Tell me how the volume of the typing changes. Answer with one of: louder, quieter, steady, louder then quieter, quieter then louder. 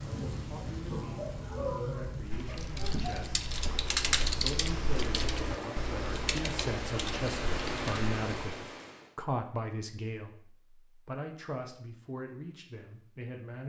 louder then quieter.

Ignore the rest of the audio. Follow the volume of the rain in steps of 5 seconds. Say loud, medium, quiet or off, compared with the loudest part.
loud, loud, off.